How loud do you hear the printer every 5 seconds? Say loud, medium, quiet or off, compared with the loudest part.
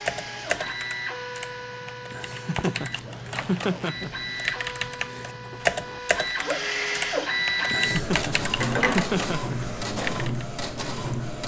medium, loud, loud.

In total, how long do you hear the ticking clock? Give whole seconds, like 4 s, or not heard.
not heard.